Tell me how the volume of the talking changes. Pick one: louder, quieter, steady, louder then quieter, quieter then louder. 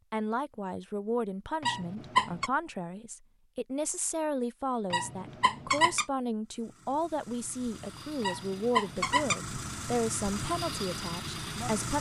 steady.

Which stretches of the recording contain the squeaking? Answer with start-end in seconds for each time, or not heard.
1.6-2.5, 4.9-6.0, 8.2-9.4.